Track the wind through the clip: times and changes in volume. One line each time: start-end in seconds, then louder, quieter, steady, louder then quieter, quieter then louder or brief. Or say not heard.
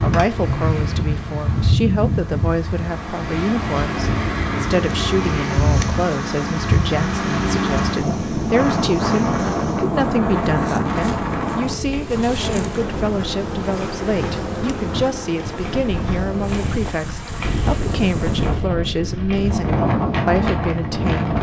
0.0-21.3 quieter then louder.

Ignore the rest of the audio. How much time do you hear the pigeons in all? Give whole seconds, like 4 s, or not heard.
not heard.